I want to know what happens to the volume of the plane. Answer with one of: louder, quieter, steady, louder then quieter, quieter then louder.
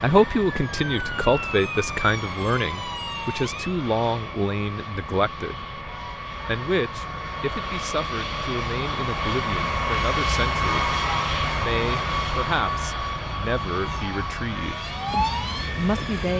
louder then quieter.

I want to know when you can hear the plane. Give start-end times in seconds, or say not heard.
0.0-16.3.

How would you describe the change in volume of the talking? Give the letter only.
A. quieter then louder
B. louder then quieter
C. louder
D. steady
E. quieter
E.